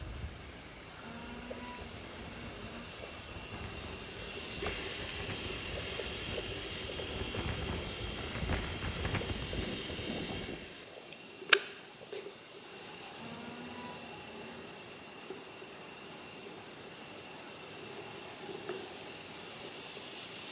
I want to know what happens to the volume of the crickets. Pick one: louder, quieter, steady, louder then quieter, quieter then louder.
steady.